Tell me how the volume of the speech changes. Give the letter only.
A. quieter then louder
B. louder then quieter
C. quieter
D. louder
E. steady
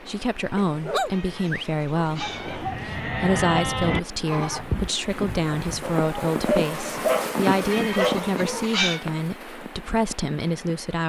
E.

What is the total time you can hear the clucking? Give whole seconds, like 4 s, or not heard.
3 s.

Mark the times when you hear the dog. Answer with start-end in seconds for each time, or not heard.
0.6-2.8, 5.8-8.7.